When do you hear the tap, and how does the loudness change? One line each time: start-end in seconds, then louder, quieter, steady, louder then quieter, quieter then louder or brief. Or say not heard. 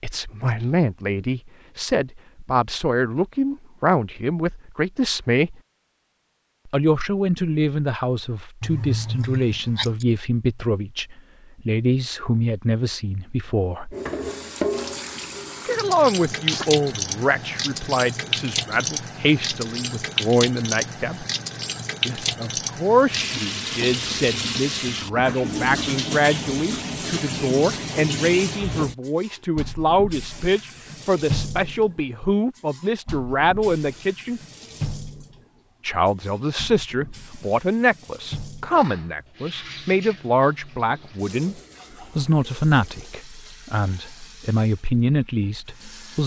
13.9-46.2 quieter.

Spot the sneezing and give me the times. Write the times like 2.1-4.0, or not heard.
8.6-10.1, 16.3-16.8, 38.7-39.4.